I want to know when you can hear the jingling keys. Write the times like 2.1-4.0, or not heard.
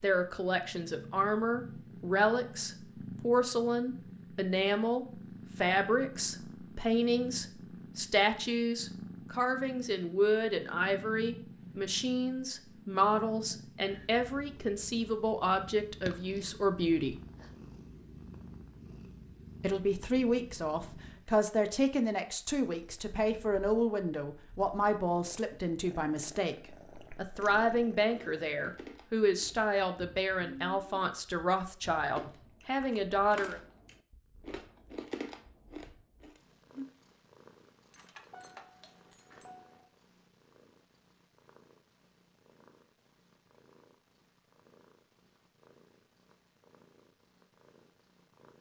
37.9-39.8.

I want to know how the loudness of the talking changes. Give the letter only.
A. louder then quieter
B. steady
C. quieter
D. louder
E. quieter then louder
B.